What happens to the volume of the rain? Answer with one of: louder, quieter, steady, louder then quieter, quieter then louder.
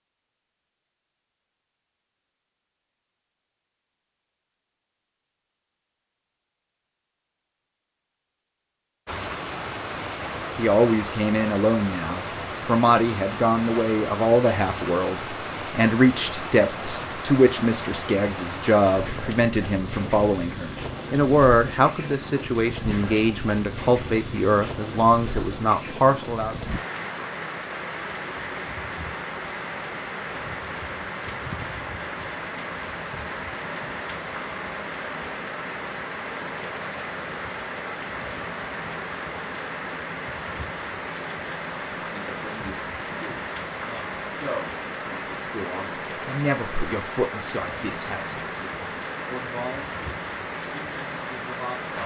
steady.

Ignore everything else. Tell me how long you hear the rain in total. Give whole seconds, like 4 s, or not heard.
43 s.